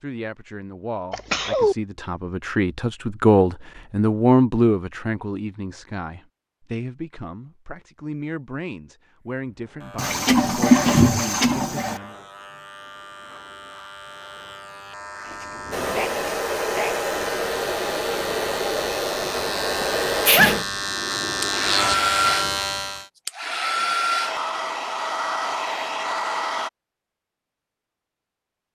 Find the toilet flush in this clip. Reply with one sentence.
You can hear the toilet flush from 9.9 to 12.0 s.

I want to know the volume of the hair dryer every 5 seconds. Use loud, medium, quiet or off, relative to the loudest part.
off, off, off, loud, loud, loud.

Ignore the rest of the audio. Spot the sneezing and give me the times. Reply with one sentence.
You can hear the sneezing from 1.1 to 1.8 s, from 15.2 to 17.1 s and from 19.8 to 20.6 s.